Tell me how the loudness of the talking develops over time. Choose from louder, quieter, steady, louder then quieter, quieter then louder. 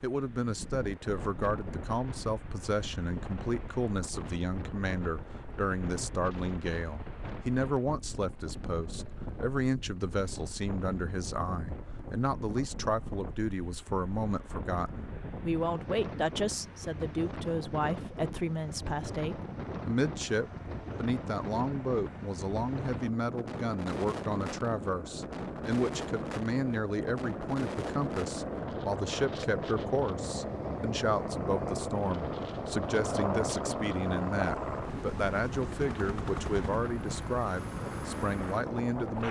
steady.